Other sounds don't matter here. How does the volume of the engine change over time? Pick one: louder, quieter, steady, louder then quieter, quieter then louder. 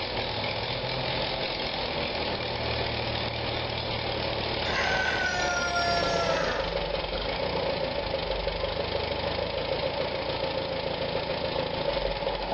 steady.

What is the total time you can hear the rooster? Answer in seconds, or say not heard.
2 s.